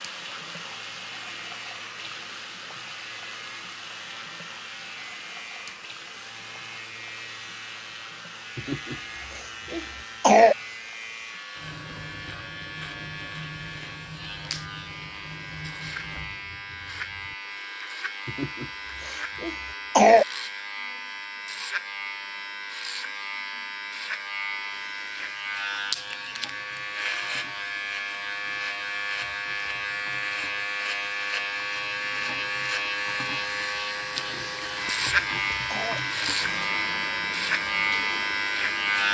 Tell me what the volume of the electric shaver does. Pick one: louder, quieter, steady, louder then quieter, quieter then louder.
louder.